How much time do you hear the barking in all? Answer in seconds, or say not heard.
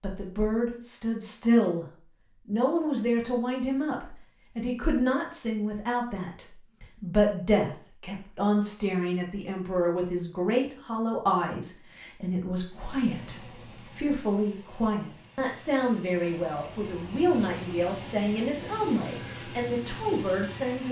not heard.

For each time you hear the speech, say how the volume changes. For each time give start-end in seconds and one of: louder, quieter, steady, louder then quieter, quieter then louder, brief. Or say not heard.
0.0-1.9 brief
2.5-20.8 steady.